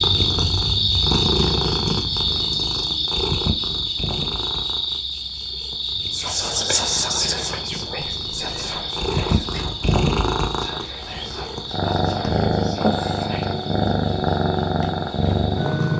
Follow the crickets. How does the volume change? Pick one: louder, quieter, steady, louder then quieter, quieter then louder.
quieter.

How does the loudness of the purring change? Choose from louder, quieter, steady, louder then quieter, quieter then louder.
quieter then louder.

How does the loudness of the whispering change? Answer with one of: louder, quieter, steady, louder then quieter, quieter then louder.
quieter.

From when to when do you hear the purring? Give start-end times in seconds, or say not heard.
0.0-15.9.